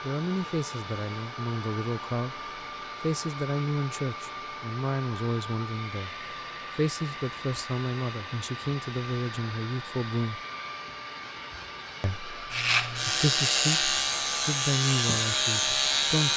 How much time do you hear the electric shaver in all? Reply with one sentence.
The electric shaver can be heard for 4 seconds in total.